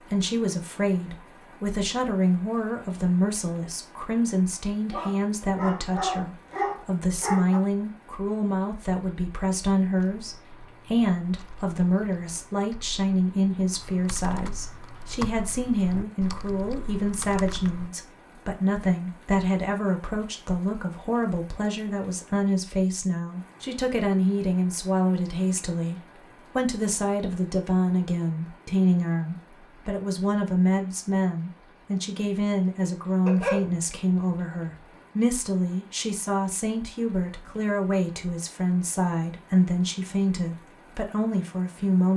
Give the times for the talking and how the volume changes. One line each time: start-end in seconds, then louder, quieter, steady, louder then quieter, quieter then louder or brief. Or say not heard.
0.1-42.1 steady.